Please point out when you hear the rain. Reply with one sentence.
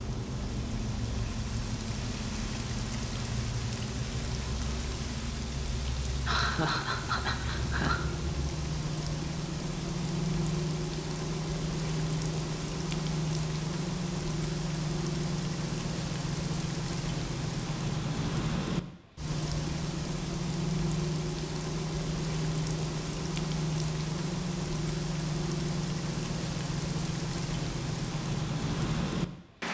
You can hear the rain from 0.0 to 29.6 s.